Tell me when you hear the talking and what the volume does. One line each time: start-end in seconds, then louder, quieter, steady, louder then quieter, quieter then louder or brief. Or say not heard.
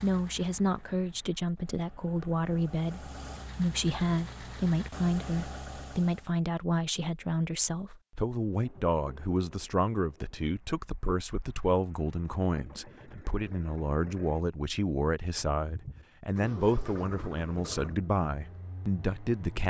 0.0-19.6 steady.